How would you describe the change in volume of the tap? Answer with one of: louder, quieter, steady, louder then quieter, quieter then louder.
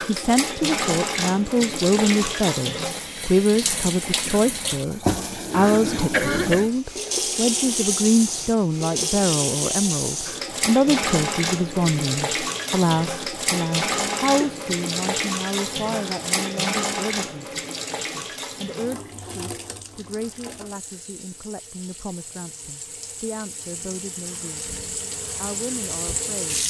quieter.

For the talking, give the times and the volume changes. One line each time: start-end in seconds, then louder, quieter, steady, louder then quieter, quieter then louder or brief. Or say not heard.
0.1-24.7 quieter
25.4-26.6 brief.